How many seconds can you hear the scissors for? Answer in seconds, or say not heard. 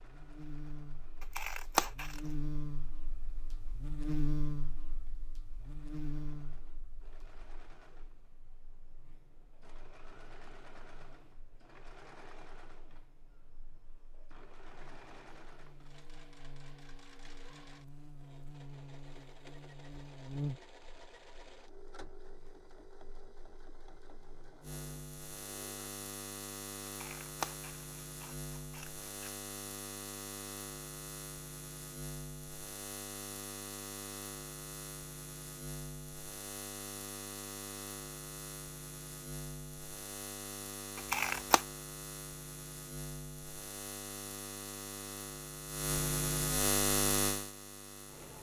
4 s.